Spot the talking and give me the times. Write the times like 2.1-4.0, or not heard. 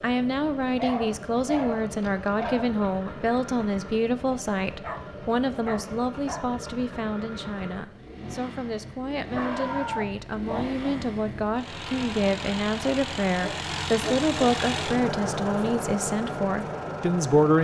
0.0-17.5.